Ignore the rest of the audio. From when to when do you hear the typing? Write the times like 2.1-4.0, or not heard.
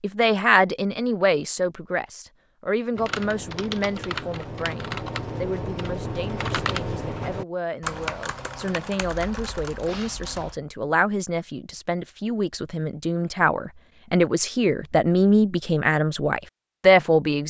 2.9-10.6.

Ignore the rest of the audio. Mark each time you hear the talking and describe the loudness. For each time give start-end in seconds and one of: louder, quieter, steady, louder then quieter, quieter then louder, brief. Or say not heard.
0.0-17.4 quieter then louder.